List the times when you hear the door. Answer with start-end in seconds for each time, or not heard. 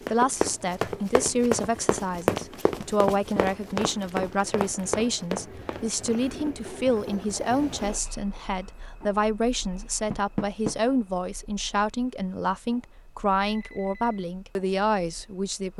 2.8-3.5, 10.1-10.8.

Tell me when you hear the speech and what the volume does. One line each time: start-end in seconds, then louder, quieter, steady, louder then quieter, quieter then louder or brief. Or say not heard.
0.1-15.7 steady.